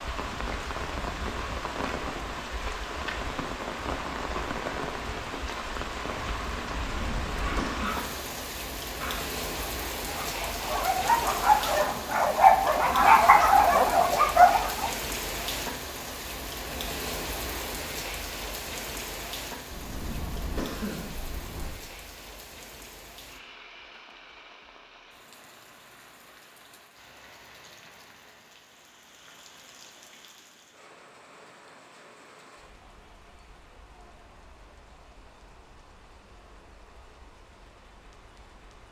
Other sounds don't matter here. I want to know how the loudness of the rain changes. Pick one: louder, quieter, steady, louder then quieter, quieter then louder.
quieter.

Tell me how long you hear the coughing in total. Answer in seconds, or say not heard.
3 s.